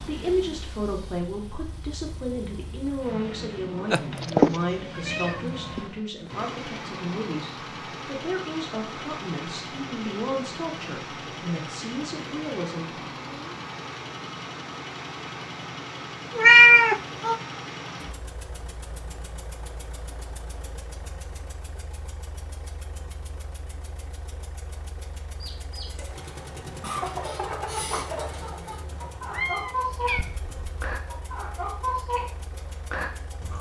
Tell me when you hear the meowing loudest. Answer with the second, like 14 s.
17 s.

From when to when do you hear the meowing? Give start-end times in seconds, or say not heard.
3.9-5.8, 16.4-17.4, 29.3-30.8.